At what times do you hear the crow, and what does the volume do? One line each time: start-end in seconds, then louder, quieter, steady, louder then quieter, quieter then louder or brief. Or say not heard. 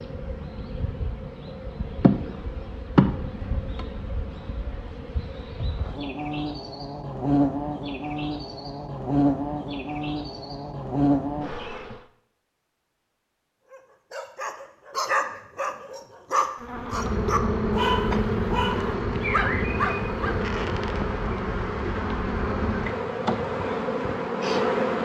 not heard.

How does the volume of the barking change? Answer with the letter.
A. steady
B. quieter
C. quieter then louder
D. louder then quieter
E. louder
A.